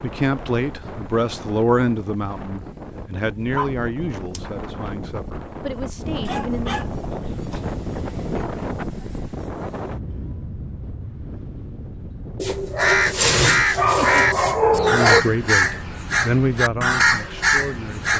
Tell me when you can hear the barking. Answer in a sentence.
The barking can be heard from 3.5 to 4.4 s, from 6.2 to 7.6 s and from 12.3 to 15.2 s.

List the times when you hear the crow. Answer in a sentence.
You can hear the crow from 12.8 to 18.1 s.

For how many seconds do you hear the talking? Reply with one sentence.
You can hear the talking for 10 seconds altogether.